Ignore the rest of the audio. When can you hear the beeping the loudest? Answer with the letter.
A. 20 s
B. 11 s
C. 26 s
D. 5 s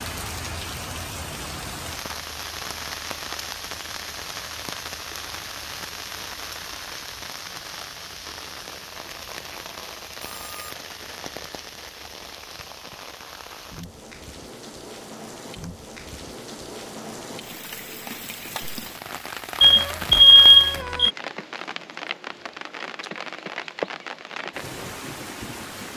A.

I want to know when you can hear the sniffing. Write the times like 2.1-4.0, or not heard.
not heard.